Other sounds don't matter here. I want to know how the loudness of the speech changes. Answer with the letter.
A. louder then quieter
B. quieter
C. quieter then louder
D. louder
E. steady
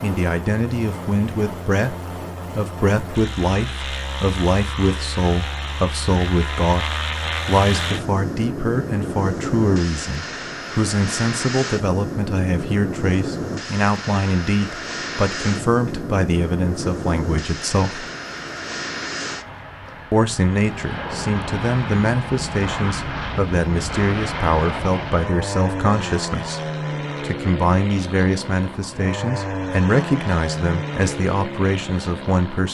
E.